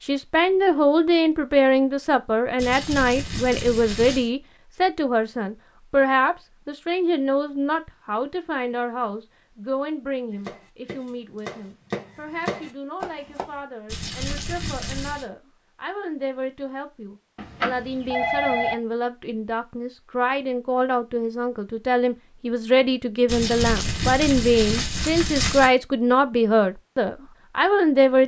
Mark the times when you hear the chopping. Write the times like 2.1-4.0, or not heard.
10.3-13.6.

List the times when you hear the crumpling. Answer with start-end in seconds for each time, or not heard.
2.5-4.3, 13.8-15.2, 23.2-25.7.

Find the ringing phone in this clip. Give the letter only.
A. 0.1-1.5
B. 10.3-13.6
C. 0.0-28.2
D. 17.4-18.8
D.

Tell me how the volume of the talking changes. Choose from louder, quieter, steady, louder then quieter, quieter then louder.
quieter then louder.